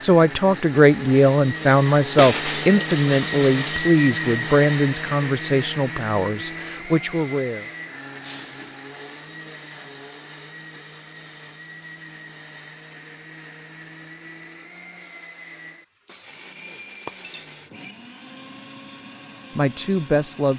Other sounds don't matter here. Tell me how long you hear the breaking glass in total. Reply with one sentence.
The breaking glass can be heard for 3 seconds in total.